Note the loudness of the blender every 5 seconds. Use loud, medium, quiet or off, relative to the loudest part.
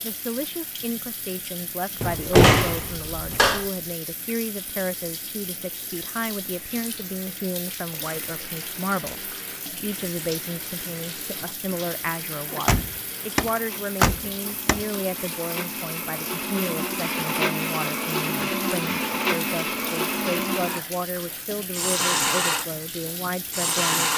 off, quiet, quiet, loud, loud.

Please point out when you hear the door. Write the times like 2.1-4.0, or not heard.
2.0-3.6, 12.5-14.8.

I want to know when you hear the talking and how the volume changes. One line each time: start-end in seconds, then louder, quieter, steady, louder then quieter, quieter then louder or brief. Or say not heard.
0.0-24.1 steady.